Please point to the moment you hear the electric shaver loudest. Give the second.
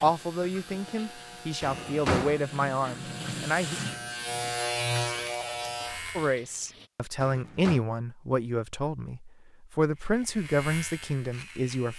5 s.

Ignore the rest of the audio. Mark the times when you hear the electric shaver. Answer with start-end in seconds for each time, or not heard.
0.0-6.4, 9.9-11.9.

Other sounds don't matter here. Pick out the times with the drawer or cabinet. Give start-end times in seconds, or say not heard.
1.6-2.4, 7.2-7.8.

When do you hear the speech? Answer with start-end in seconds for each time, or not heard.
0.0-3.8, 6.2-11.9.